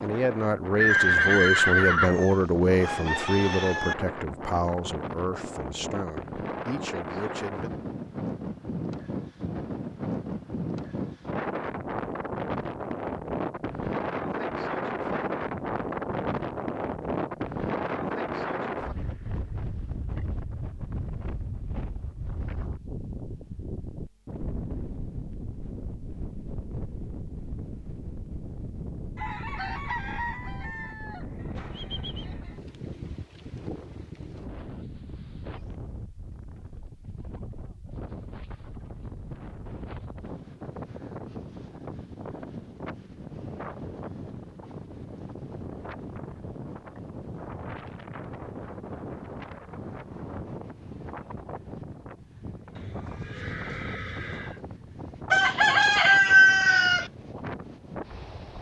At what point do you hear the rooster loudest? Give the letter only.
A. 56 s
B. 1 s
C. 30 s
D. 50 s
A.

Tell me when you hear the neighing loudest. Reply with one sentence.
The loudest moment of the neighing is at 1 second.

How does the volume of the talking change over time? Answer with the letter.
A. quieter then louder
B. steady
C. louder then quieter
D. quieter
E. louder
D.